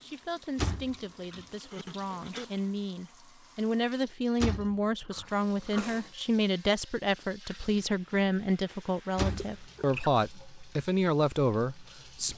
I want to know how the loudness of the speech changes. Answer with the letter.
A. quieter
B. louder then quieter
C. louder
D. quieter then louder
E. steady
C.